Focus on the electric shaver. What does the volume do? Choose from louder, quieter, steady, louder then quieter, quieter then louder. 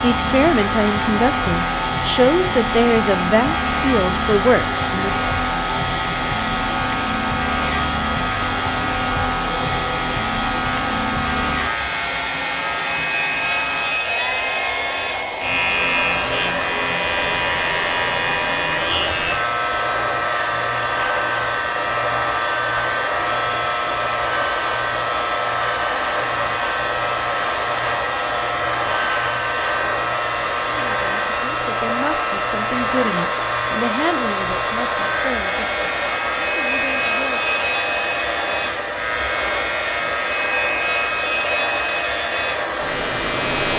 steady.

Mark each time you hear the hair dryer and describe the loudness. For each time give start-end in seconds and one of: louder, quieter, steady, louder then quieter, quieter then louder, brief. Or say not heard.
0.0-43.7 steady.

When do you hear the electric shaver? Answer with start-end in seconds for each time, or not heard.
0.0-43.7.